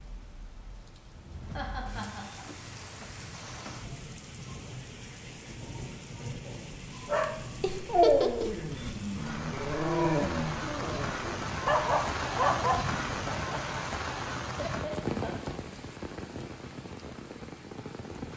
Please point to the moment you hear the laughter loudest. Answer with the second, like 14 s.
8 s.